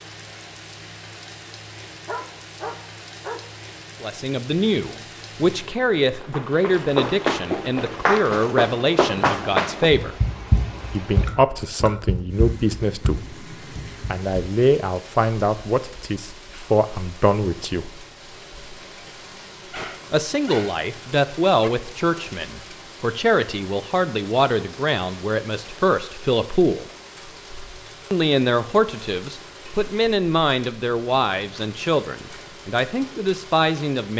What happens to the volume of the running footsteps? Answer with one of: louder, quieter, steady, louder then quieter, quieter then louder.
quieter.